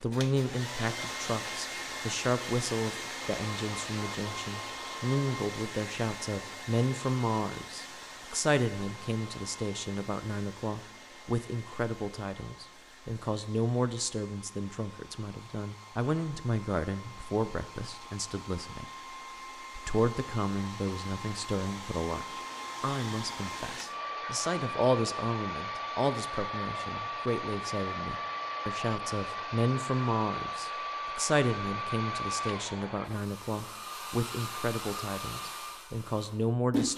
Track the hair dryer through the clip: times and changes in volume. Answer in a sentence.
The hair dryer can be heard from 0.0 to 36.9 s, getting quieter then louder.